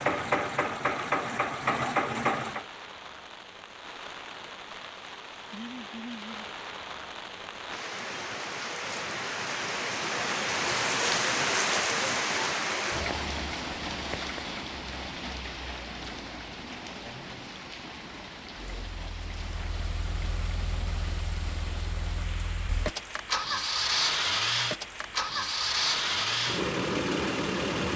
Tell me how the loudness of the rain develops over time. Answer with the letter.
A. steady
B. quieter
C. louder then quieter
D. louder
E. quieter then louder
C.